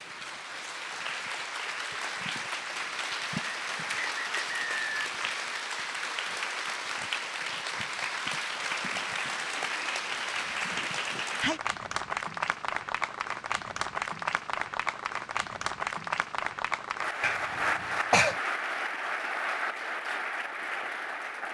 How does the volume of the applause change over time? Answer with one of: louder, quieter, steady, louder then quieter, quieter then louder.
steady.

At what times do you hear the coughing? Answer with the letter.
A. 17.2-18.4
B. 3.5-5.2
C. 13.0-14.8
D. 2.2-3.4
A.